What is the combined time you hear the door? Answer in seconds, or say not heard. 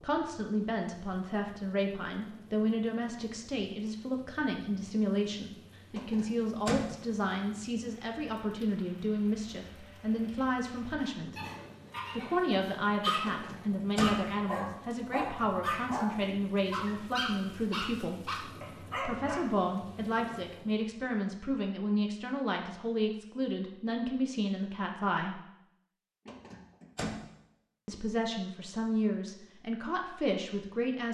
3 s.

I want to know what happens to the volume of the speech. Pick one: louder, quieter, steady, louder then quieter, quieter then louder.
steady.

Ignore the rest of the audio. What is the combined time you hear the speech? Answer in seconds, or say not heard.
28 s.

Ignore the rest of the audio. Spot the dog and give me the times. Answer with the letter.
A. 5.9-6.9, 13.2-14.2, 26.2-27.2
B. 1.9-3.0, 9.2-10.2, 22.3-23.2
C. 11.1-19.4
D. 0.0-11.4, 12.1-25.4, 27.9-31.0
C.